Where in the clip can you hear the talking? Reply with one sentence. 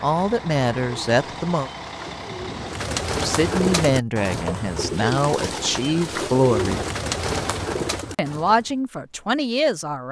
You can hear the talking from 0.0 to 1.7 s, from 3.1 to 6.8 s and from 8.2 to 10.0 s.